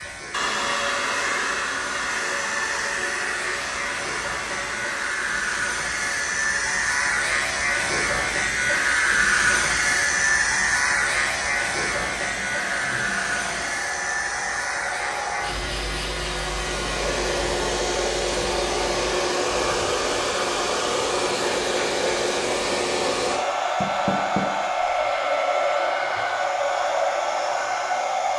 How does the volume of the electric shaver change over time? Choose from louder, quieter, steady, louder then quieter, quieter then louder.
louder then quieter.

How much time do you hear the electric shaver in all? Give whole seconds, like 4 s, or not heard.
19 s.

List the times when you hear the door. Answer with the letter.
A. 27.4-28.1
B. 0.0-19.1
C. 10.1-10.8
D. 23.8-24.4
D.